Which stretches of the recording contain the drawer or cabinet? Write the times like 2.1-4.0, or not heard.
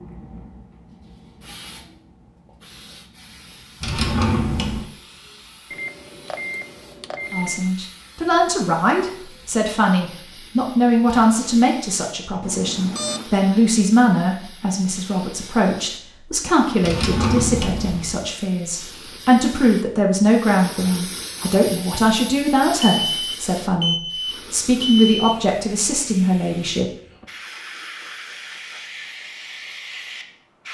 3.8-4.8, 16.8-18.2.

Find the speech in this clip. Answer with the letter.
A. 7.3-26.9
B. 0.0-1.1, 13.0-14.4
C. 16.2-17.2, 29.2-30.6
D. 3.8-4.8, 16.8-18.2
A.